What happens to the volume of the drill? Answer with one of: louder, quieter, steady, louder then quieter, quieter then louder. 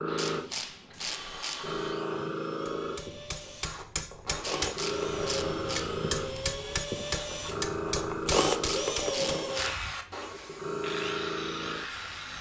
louder then quieter.